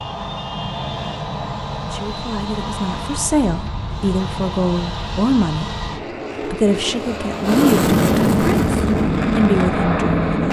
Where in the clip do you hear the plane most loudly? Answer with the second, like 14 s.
8 s.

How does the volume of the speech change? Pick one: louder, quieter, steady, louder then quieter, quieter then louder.
louder.